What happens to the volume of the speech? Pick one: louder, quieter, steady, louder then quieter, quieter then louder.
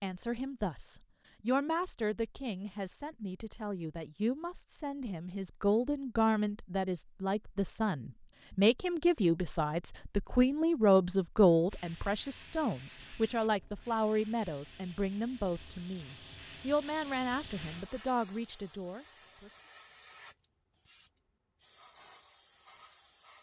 louder then quieter.